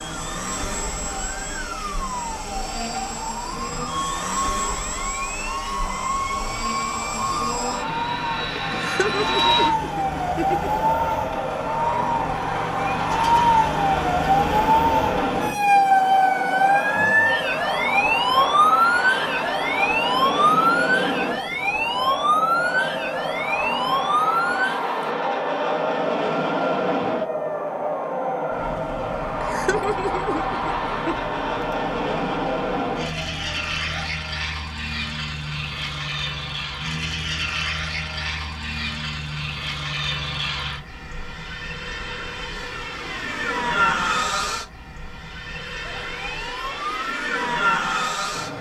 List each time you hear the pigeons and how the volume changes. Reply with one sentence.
You can't hear the pigeons here.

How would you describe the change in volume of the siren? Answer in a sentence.
The volume of the siren goes up, then down.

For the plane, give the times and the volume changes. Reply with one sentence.
The plane can be heard from 0.0 to 48.5 s, at a steady volume.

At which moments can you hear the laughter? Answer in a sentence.
The laughter can be heard from 8.7 to 10.9 s and from 29.4 to 31.1 s.